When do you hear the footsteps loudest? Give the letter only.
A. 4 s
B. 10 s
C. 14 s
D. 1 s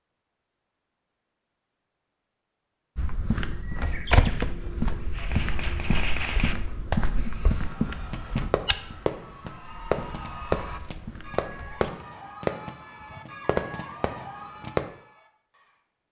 A.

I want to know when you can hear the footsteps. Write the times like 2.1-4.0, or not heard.
3.0-11.9.